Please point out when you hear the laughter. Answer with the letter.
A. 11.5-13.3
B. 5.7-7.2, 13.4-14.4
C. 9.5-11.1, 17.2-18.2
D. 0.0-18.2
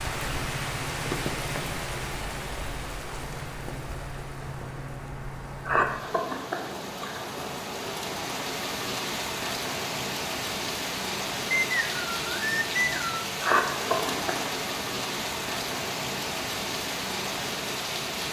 B.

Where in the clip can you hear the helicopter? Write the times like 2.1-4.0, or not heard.
not heard.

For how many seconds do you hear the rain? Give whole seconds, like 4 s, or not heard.
18 s.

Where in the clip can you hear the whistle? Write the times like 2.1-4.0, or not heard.
11.5-13.3.